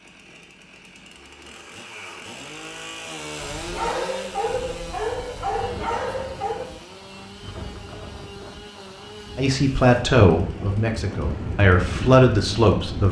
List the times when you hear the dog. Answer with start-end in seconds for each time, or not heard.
3.7-6.7.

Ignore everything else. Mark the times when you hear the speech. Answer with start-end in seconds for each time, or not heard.
9.3-13.0.